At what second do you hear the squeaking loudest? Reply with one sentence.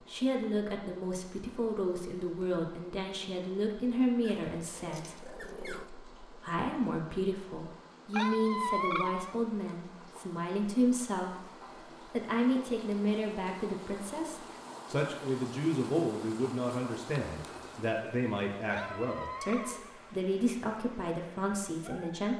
The volume of the squeaking peaks at 9 seconds.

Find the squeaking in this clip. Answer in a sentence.
You can hear the squeaking from 4.2 to 5.9 s, from 8.1 to 9.3 s and from 18.7 to 20.1 s.